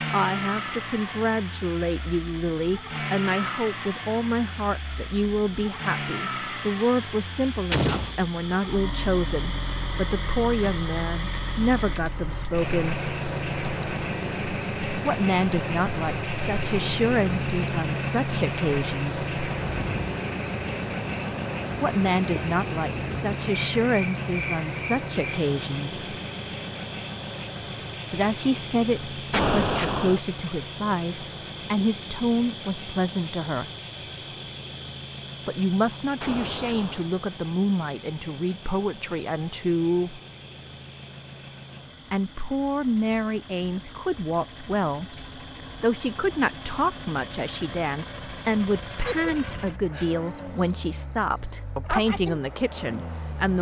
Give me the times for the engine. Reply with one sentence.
The engine can be heard from 0.0 to 53.5 s.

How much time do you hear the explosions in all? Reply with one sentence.
You can hear the explosions for 2 seconds altogether.